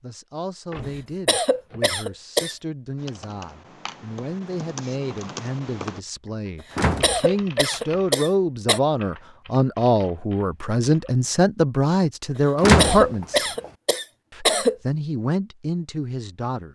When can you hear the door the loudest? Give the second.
13 s.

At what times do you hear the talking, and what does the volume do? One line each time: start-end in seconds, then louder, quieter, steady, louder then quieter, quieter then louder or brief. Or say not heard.
0.0-13.5 louder
14.3-16.7 brief.